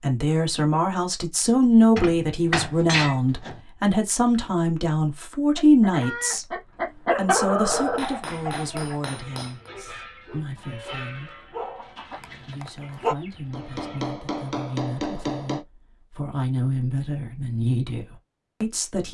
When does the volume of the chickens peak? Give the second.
7 s.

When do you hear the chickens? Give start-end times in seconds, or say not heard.
5.5-14.1.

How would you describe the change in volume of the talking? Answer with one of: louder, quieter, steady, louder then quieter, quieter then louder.
quieter then louder.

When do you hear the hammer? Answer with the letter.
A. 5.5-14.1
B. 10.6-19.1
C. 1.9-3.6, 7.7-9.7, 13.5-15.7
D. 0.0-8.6
C.